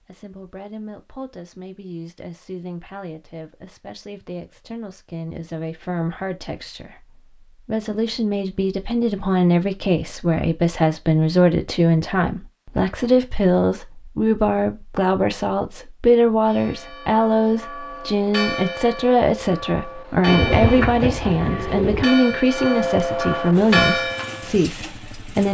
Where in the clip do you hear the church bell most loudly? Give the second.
24 s.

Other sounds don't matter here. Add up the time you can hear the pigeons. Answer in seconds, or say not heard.
2 s.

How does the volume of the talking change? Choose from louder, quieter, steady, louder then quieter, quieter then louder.
louder.